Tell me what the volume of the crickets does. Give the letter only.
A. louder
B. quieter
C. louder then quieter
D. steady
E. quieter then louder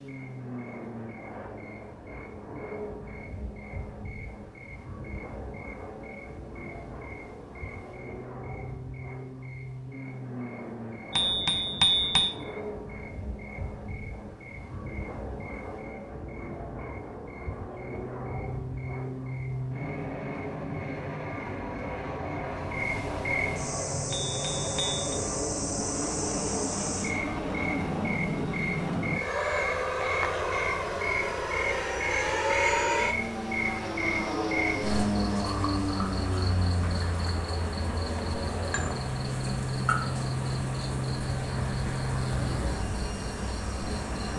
A.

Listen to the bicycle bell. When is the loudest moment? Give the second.
12 s.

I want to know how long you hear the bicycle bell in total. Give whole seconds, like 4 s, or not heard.
2 s.